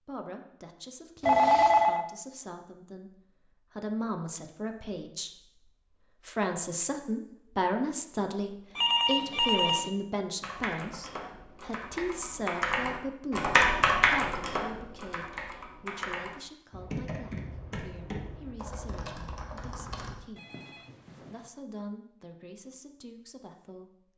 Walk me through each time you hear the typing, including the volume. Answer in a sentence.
The typing can be heard from 10.4 to 20.2 s, getting louder then quieter.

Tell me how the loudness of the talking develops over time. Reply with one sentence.
The loudness of the talking goes up, then down.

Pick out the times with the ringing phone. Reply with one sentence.
The ringing phone can be heard from 1.2 to 2.0 s, from 8.8 to 9.9 s and from 20.4 to 21.5 s.